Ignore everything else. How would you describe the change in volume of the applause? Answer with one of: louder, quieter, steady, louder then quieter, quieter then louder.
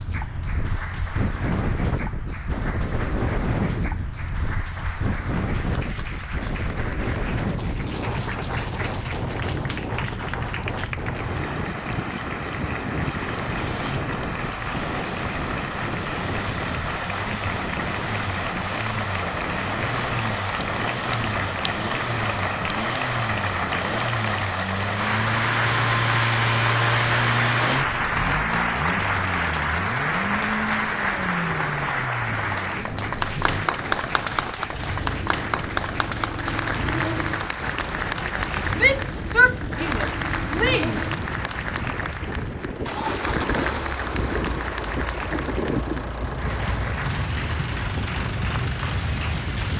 louder then quieter.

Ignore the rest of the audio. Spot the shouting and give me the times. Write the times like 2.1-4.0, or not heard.
38.8-41.0.